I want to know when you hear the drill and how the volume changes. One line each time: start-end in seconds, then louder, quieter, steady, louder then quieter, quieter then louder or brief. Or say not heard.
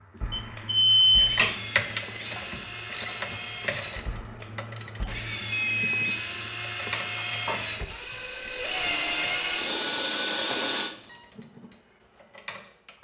0.0-10.9 louder.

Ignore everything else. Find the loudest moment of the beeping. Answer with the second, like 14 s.
1 s.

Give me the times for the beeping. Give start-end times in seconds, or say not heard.
0.3-1.4, 5.5-6.2, 10.5-11.3.